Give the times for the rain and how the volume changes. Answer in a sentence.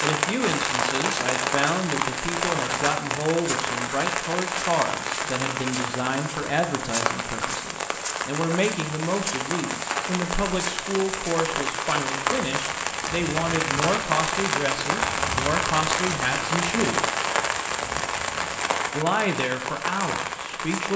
The rain can be heard from 0.0 to 20.9 s, at a steady volume.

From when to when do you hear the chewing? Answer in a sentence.
The chewing can't be heard in this clip.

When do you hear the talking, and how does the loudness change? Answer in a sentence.
The talking can be heard from 0.0 to 17.1 s, at a steady volume; and briefly from 18.9 to 20.9 s.